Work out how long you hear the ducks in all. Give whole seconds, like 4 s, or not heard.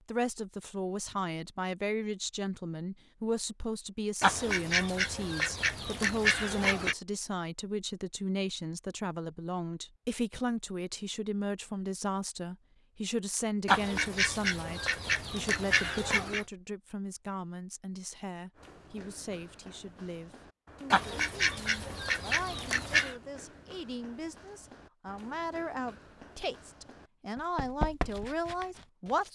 8 s.